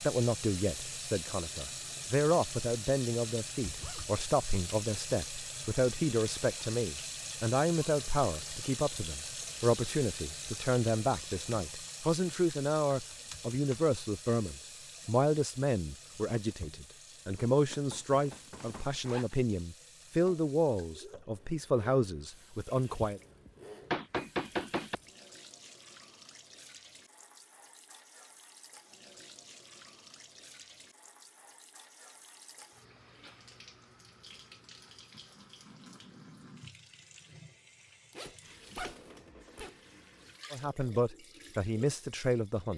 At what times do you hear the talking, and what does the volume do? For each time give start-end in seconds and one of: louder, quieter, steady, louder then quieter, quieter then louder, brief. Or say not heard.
0.0-23.2 steady
40.5-42.7 brief.